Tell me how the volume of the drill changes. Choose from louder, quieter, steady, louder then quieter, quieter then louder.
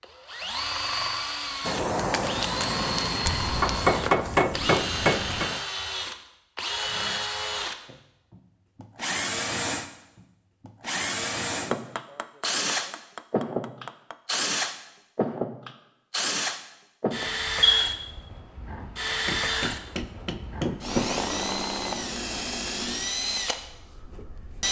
steady.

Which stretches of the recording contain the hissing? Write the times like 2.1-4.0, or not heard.
1.6-5.6.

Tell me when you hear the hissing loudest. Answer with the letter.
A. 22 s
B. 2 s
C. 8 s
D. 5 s
B.